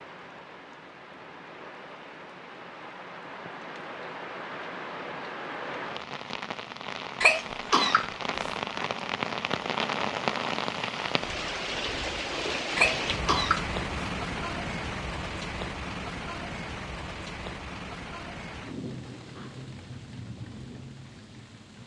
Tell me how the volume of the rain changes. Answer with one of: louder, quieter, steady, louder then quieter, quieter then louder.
louder then quieter.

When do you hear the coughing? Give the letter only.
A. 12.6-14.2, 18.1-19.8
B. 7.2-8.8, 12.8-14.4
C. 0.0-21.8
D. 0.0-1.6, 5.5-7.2
B.